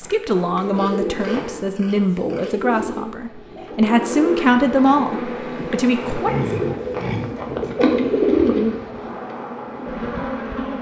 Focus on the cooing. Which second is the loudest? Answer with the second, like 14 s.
8 s.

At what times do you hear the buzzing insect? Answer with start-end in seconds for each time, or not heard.
0.0-1.8, 3.9-10.7.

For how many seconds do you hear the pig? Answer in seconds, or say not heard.
4 s.